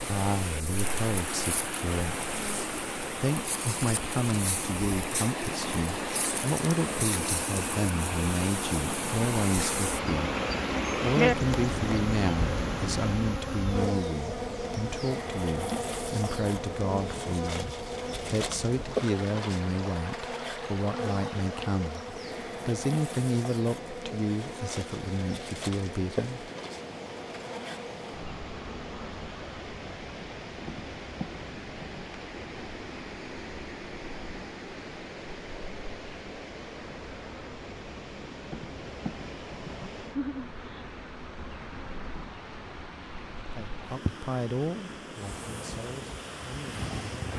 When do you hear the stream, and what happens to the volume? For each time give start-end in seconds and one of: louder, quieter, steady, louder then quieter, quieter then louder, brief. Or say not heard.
0.0-47.3 quieter.